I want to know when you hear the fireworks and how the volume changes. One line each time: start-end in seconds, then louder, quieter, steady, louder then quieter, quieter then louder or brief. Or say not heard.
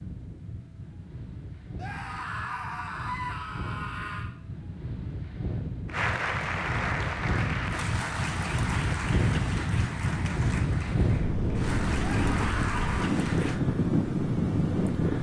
not heard.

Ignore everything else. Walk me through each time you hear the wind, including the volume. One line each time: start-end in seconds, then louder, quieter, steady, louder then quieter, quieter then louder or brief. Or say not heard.
0.0-15.1 louder.